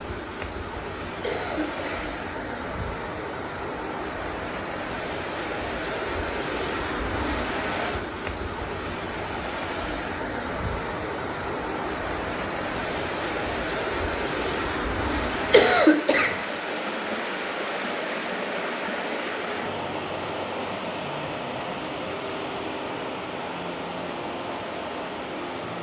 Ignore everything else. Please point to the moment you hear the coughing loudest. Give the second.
16 s.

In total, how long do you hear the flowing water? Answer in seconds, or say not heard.
26 s.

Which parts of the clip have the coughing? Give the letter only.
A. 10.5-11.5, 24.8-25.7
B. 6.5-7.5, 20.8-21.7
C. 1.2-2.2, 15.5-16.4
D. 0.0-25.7
C.